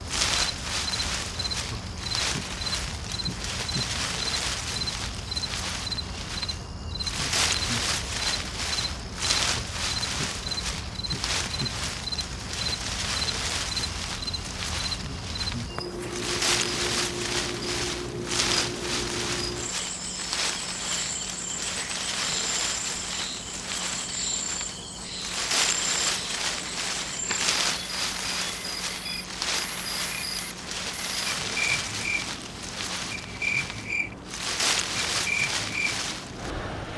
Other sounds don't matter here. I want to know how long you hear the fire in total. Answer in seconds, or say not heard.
not heard.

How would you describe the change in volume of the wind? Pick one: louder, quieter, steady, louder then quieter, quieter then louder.
steady.